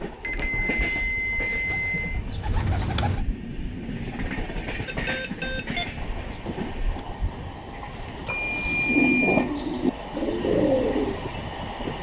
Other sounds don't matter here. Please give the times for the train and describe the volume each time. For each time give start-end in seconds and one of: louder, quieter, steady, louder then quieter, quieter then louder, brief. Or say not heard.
0.0-11.9 louder.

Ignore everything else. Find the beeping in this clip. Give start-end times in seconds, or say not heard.
0.2-2.2, 4.8-5.9, 8.2-9.5.